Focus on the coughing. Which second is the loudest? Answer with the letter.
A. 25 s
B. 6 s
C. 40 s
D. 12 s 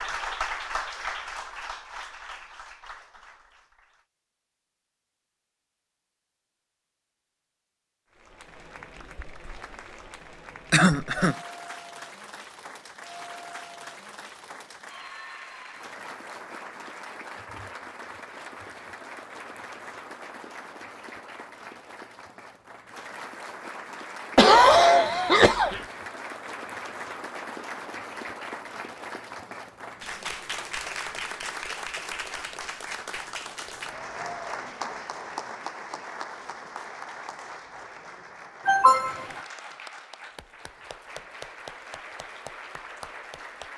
A.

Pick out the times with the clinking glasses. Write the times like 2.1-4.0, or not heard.
not heard.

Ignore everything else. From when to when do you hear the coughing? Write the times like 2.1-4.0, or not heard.
10.7-11.3, 24.4-25.8, 38.6-39.2.